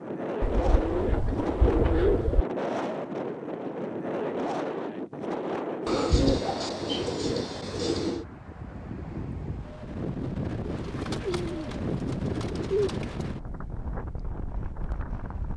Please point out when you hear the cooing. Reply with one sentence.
The cooing can be heard from 0.4 to 2.5 s, from 5.8 to 8.2 s and from 10.7 to 13.2 s.